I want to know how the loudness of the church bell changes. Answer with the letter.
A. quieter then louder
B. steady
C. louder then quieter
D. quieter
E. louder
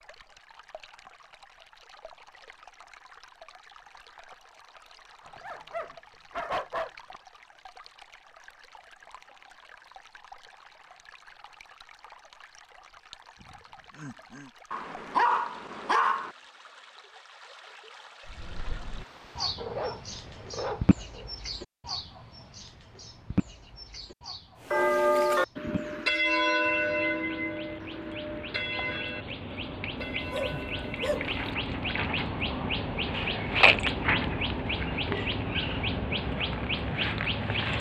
D.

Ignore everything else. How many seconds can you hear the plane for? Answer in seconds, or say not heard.
not heard.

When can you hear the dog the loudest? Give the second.
15 s.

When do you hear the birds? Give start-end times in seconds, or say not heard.
18.2-37.7.